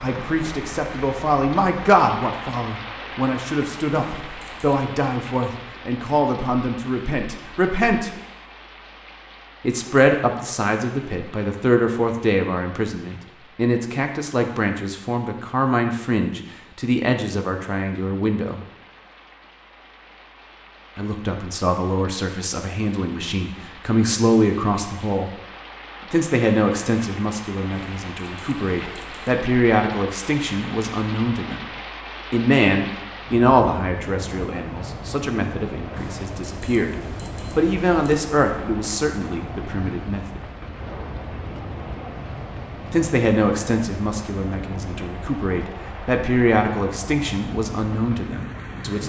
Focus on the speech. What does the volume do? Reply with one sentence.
The volume of the speech stays about the same.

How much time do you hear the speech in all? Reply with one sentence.
You can hear the speech for 41 seconds altogether.